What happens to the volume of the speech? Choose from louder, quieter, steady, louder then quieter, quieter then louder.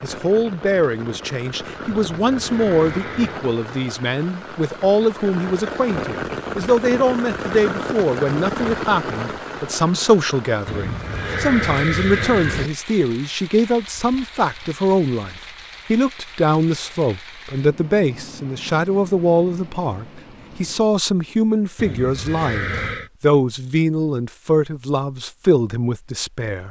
steady.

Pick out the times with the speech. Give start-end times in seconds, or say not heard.
0.0-26.6.